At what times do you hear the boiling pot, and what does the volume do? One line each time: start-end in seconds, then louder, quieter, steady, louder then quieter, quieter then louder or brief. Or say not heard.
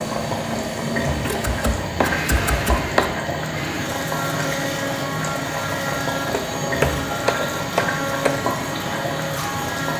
0.0-9.9 steady.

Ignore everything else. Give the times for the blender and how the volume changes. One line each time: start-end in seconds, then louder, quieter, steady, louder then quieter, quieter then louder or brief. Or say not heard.
0.0-9.9 steady.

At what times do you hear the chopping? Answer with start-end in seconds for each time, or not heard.
1.2-3.1, 6.3-8.3.